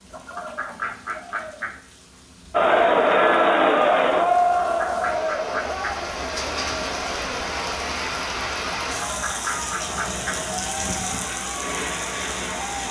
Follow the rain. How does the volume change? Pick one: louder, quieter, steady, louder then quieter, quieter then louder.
louder.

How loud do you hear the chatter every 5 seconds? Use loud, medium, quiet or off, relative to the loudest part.
loud, quiet, quiet.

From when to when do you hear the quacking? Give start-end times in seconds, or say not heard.
0.1-1.8, 4.6-6.0, 9.0-10.4.